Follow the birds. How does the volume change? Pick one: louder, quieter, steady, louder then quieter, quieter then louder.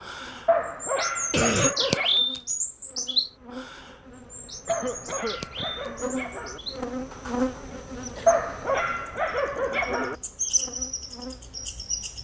quieter then louder.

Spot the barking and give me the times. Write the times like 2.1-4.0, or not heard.
0.5-2.2, 4.7-6.6, 8.2-10.2.